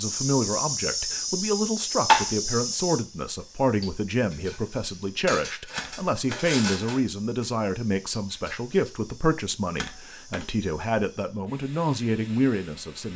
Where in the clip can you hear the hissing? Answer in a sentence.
You can hear the hissing from 0.0 to 13.1 s.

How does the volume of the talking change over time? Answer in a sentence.
The volume of the talking stays about the same.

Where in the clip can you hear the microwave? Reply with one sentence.
You can't hear the microwave here.